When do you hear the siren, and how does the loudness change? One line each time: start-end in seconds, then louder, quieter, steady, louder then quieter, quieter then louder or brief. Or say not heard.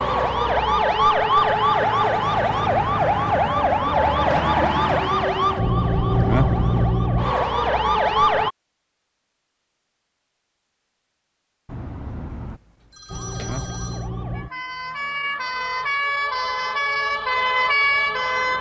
0.0-8.5 steady
13.1-18.5 louder.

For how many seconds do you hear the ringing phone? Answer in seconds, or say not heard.
3 s.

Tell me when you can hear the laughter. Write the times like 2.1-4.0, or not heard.
not heard.